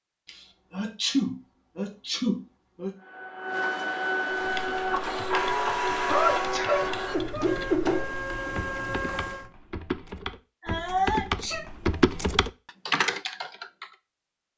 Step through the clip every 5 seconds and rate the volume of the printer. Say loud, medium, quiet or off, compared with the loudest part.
loud, loud, off.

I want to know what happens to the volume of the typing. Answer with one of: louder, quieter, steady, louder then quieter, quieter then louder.
louder.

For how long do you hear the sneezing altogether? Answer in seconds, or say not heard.
5 s.